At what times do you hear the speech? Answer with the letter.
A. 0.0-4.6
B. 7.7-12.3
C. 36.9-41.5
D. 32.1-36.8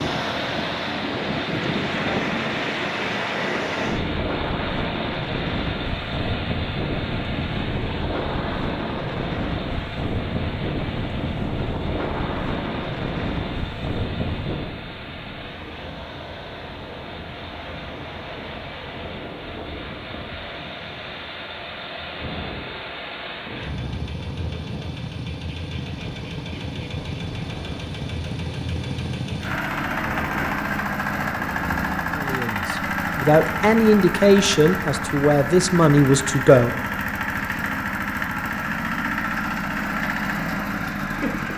D.